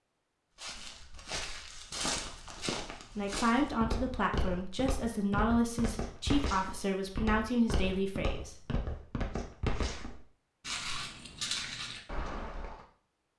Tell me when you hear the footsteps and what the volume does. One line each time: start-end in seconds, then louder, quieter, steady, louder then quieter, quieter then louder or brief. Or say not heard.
0.6-12.8 steady.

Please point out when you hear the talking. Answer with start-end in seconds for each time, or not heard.
3.1-8.6.